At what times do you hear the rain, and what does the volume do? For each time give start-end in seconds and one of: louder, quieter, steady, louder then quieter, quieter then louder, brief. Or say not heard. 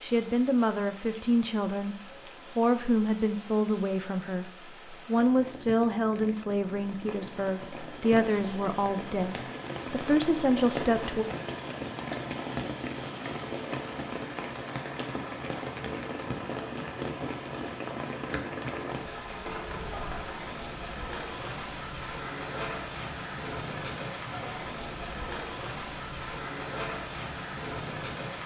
0.0-28.4 louder.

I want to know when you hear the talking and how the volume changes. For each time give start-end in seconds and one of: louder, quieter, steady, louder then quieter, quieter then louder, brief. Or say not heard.
0.0-11.2 steady.